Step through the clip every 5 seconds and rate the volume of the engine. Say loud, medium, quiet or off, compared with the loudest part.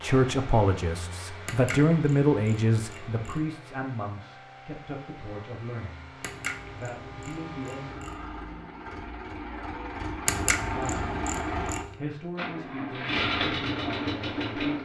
quiet, medium, loud.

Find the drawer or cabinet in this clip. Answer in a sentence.
You can't hear the drawer or cabinet here.